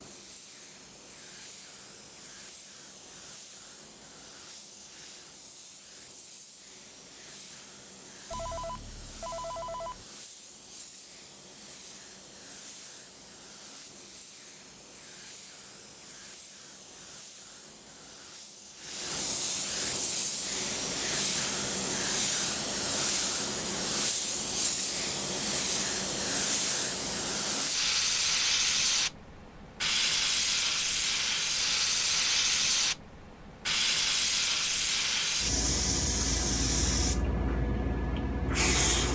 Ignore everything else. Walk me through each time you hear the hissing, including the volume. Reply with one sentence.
You can hear the hissing from 0.0 to 39.1 s, getting louder.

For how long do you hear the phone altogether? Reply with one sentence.
The phone can be heard for 2 seconds in total.